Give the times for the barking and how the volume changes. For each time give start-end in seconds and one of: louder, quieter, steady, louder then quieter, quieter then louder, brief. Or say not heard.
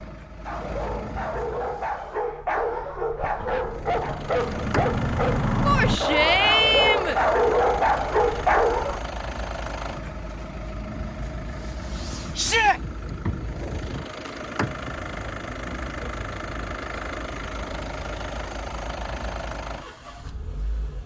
0.5-9.0 louder.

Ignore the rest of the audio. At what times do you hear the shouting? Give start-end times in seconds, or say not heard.
5.7-7.2, 12.3-12.8.